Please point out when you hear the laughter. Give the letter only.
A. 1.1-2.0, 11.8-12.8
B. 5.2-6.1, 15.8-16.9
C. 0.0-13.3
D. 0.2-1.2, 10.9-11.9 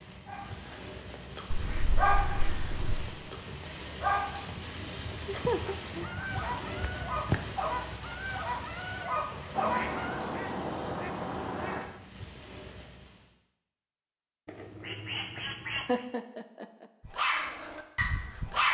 B.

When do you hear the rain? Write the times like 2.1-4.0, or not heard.
0.0-13.3.